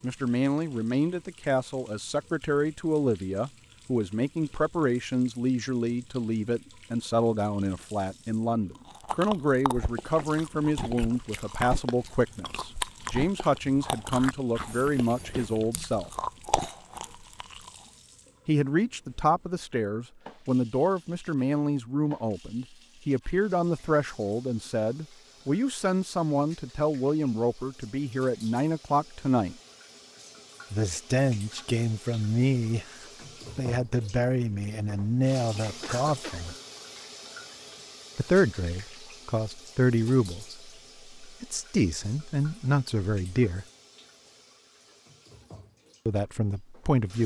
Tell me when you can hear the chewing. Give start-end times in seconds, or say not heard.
8.8-17.9.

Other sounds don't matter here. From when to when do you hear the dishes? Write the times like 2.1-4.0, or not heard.
not heard.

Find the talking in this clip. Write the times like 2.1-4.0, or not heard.
0.0-16.1, 18.4-29.6, 30.7-36.5, 38.1-43.6, 46.0-47.2.